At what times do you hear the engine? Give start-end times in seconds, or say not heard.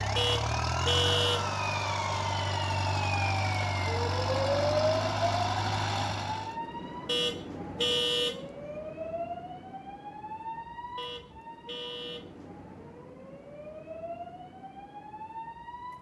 0.0-6.6.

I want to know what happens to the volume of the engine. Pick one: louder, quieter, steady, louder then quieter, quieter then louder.
steady.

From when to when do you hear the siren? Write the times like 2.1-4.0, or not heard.
0.0-15.9.